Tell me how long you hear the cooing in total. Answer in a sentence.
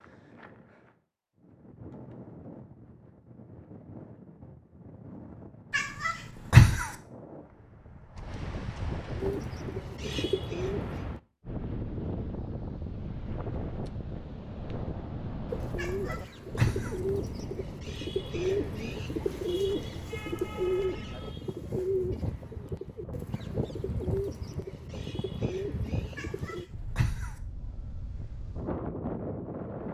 The cooing can be heard for 13 seconds in total.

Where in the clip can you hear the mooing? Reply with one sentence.
You can't hear the mooing here.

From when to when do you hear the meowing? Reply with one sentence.
The meowing can be heard from 5.7 to 6.9 s, from 15.8 to 16.9 s and from 26.1 to 27.3 s.